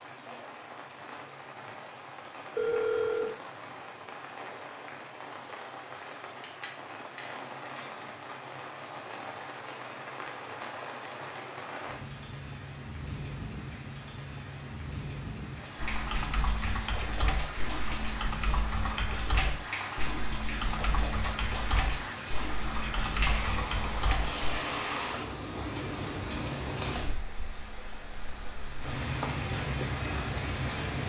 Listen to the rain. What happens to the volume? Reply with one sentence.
The loudness of the rain goes up.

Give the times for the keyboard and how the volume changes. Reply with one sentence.
The keyboard can be heard from 15.8 to 24.6 s, at a steady volume.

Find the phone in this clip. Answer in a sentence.
You can hear the phone from 2.5 to 3.4 s.